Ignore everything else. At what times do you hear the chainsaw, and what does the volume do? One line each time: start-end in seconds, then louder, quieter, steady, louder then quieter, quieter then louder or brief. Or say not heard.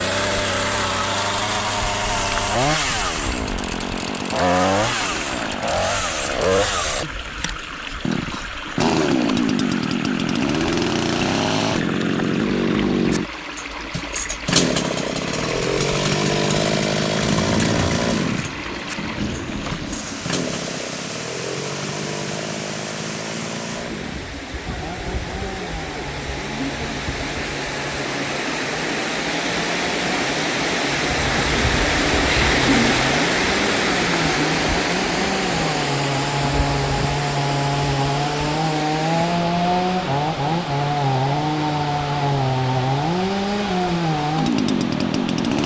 0.0-45.6 quieter then louder.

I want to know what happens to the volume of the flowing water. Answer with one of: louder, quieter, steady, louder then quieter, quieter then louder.
louder then quieter.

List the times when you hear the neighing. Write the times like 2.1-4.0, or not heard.
32.3-33.0.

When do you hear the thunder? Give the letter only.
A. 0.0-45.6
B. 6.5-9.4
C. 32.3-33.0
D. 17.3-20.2
D.